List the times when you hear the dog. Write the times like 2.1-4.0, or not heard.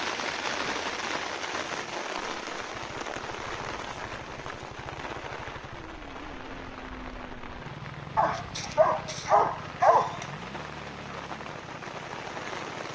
8.2-10.2.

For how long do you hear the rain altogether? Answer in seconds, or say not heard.
13 s.